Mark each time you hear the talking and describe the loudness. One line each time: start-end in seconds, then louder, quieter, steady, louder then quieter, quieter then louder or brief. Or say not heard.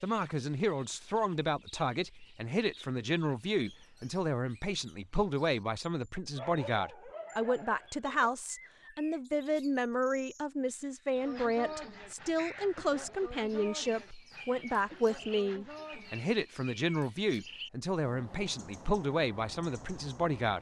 0.0-20.5 steady.